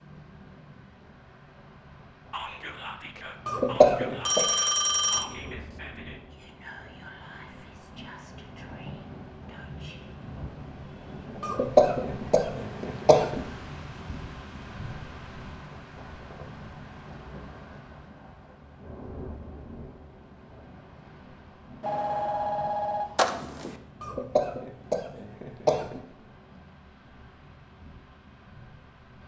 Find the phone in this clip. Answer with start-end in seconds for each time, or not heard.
3.5-5.2, 21.8-23.8.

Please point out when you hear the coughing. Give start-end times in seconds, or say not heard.
3.5-4.4, 11.4-13.4, 24.0-26.0.